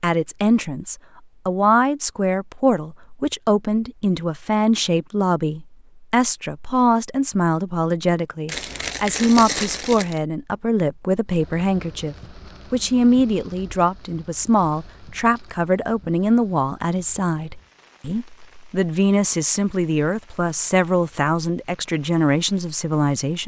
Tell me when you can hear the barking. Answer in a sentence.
The barking can't be heard in this clip.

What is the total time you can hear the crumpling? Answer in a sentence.
You can hear the crumpling for 2 seconds altogether.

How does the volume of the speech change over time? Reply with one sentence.
The volume of the speech stays about the same.